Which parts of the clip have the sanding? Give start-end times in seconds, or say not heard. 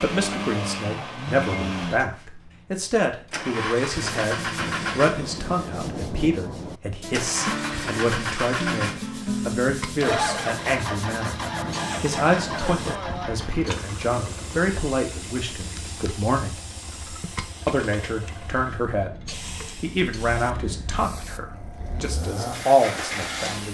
4.0-12.9.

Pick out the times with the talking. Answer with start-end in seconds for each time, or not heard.
0.0-11.3, 12.0-16.6, 17.6-23.7.